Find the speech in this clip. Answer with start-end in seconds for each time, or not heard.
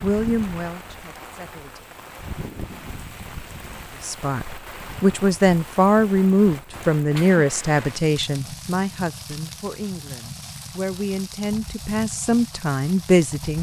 0.0-1.8, 4.0-13.5.